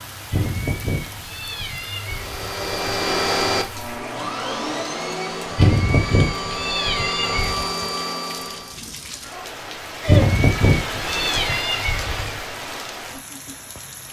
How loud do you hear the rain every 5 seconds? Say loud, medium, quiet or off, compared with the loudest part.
medium, medium, loud.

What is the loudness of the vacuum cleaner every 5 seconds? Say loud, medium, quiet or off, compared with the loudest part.
loud, loud, off.